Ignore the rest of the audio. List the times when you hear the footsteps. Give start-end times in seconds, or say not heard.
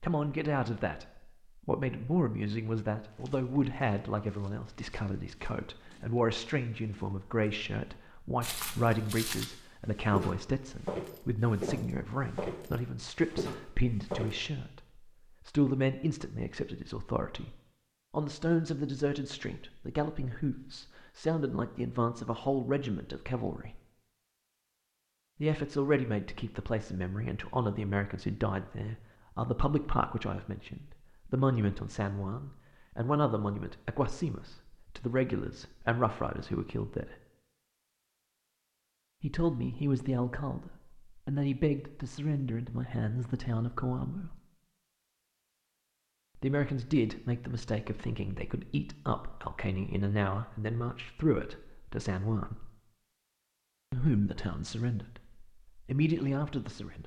3.0-14.3.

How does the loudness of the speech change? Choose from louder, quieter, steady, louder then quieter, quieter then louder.
steady.